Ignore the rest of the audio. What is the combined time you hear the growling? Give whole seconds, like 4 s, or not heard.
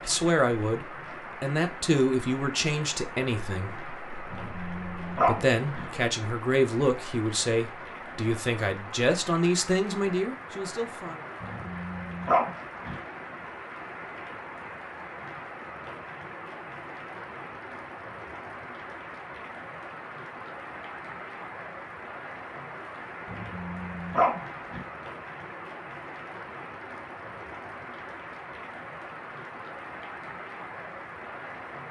5 s.